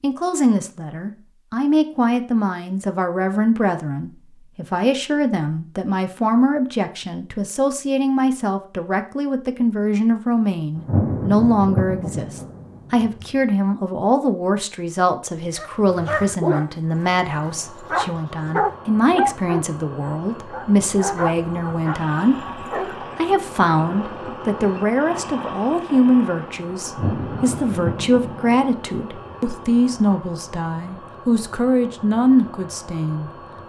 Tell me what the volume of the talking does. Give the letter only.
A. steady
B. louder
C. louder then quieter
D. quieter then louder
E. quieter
A.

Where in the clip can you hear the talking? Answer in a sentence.
The talking can be heard from 0.0 to 33.6 s.